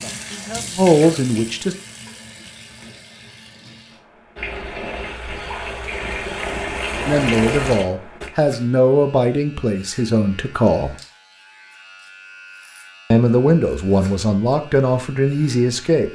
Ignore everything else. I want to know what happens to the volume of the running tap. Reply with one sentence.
The loudness of the running tap goes down, then up.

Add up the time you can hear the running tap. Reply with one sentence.
You can hear the running tap for 8 seconds altogether.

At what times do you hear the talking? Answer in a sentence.
The talking can be heard from 0.0 to 1.8 s, from 7.0 to 10.9 s and from 13.1 to 16.1 s.